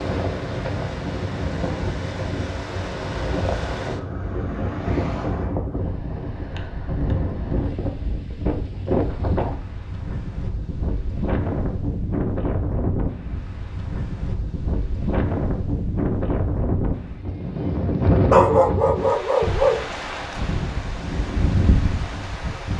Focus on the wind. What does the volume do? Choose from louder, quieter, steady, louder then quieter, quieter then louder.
steady.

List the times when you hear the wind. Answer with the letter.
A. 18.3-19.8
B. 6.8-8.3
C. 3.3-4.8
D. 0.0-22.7
D.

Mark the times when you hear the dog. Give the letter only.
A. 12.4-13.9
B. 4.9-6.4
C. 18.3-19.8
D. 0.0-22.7
C.